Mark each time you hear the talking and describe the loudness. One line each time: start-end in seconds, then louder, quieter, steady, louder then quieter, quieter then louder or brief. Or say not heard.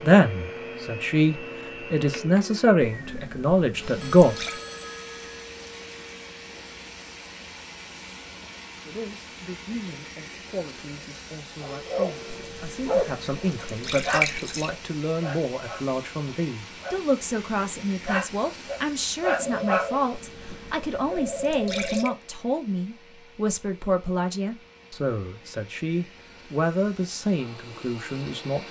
0.0-4.3 louder
8.8-28.6 louder.